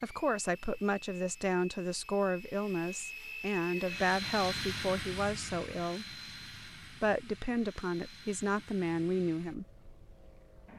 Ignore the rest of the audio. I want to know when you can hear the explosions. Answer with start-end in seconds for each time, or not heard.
not heard.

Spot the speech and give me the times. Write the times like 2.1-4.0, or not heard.
0.0-6.0, 6.9-9.7.